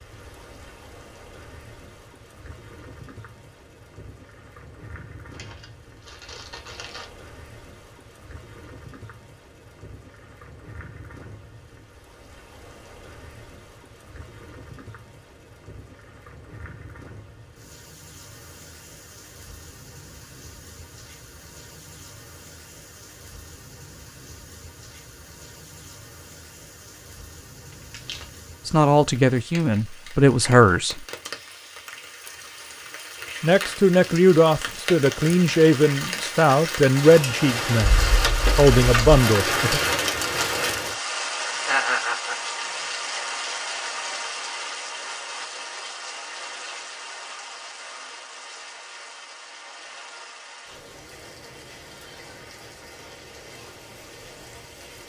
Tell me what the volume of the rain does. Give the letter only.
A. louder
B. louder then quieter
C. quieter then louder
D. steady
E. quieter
B.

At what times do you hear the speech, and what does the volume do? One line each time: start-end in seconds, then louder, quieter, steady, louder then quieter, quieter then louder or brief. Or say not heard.
28.6-31.1 brief
33.4-39.8 quieter then louder.